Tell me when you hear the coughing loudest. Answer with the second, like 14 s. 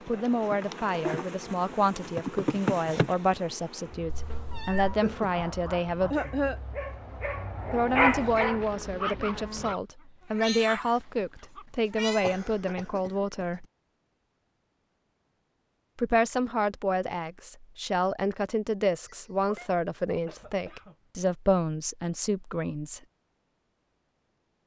6 s.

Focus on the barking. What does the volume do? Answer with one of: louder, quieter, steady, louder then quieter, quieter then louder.
louder then quieter.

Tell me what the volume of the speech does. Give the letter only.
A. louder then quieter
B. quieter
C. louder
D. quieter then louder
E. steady
E.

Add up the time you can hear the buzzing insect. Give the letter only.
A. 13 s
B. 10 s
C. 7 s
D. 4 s
B.